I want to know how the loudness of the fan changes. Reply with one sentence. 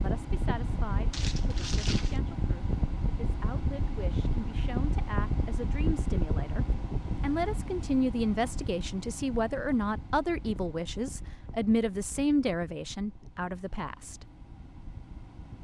The loudness of the fan goes down.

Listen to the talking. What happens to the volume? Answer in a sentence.
The volume of the talking goes up.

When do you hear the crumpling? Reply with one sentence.
The crumpling can be heard from 1.1 to 2.2 s.